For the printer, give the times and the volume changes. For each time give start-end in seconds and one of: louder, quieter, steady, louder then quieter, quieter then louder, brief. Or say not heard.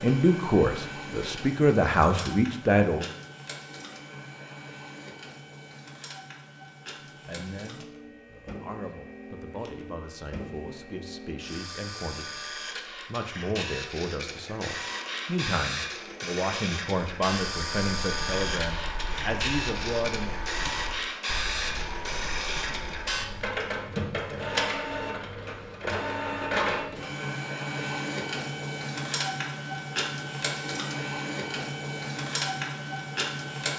0.0-33.7 louder.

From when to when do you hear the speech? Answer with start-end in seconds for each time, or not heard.
0.0-3.1, 7.2-20.4.